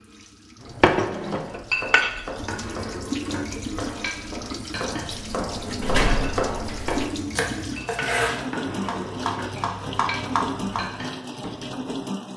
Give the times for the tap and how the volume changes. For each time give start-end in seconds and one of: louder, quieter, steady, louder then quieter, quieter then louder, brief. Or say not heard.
0.0-12.3 louder.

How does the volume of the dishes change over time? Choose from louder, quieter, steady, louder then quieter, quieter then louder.
quieter.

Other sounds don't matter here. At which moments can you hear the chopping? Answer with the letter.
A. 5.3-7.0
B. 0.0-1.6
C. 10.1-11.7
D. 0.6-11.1
D.